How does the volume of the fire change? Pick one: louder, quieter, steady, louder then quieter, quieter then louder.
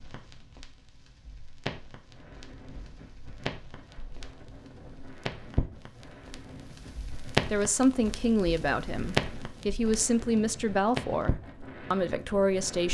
louder.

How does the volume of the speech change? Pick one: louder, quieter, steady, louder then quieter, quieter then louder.
quieter then louder.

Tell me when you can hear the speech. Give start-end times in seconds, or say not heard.
7.5-12.8.